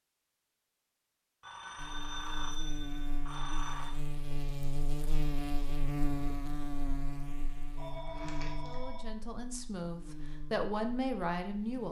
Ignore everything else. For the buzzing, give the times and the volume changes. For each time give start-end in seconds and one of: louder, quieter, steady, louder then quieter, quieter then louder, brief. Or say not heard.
1.8-11.8 louder then quieter.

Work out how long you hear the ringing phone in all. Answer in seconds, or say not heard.
4 s.